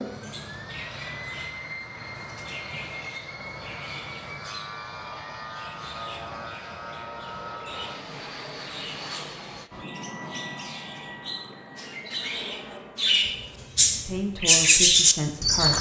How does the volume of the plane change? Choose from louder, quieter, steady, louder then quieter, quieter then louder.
quieter.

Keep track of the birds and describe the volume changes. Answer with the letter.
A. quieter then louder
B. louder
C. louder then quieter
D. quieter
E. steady
B.